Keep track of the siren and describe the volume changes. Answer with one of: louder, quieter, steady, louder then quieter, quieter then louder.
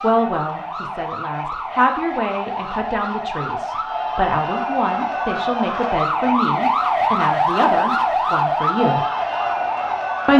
louder.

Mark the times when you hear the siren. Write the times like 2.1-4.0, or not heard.
0.0-10.3.